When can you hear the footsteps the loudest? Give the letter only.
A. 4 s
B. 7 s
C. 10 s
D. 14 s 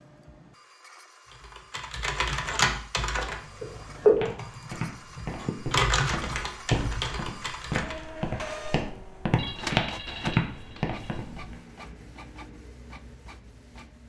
C.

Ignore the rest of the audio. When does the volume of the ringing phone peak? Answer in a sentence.
The volume of the ringing phone peaks at 4 seconds.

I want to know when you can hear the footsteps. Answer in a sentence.
You can hear the footsteps from 4.0 to 11.6 s.